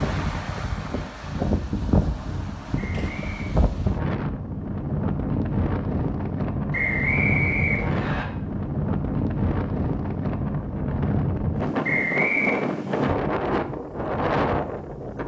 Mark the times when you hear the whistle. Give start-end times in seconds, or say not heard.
2.8-3.5, 6.7-8.2, 11.8-12.6.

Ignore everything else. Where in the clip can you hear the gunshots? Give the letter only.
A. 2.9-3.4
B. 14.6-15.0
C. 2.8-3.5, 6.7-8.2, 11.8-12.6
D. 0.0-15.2
A.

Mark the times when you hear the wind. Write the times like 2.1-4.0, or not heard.
0.0-15.2.